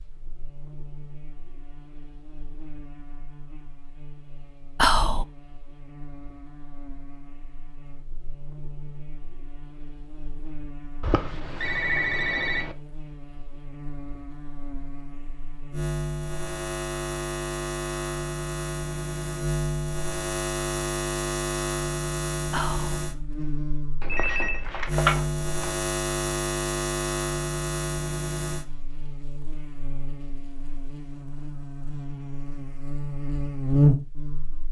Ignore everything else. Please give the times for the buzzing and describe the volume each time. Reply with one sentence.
The buzzing can be heard from 0.0 to 34.6 s, getting louder.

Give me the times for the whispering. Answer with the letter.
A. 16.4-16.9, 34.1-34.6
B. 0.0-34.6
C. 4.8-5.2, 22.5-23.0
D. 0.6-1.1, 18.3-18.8
C.